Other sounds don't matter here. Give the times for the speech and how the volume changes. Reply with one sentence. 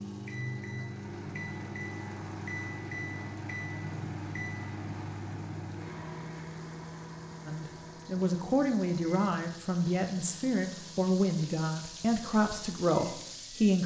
The speech can be heard from 7.5 to 13.8 s, at a steady volume.